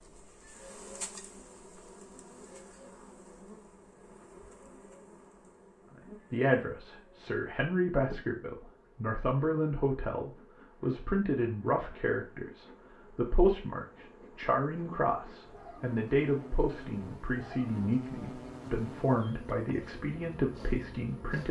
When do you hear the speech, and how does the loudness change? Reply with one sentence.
You can hear the speech from 6.0 to 21.4 s, at a steady volume.